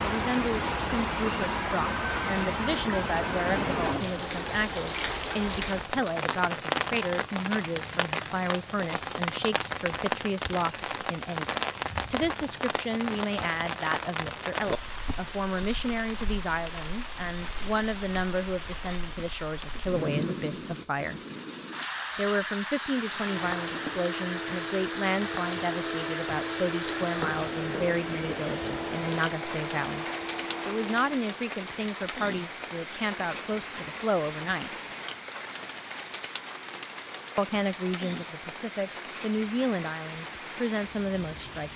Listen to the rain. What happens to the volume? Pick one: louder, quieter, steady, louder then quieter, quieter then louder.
quieter.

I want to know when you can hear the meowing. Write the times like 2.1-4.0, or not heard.
not heard.